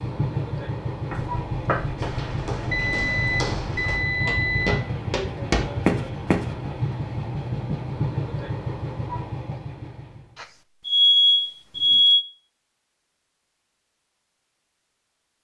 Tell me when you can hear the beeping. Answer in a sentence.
The beeping can be heard from 2.6 to 4.8 s and from 10.3 to 12.2 s.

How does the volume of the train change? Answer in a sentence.
The loudness of the train stays about the same.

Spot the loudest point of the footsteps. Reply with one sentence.
The volume of the footsteps peaks at 6 seconds.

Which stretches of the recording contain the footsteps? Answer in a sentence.
You can hear the footsteps from 1.1 to 6.5 s.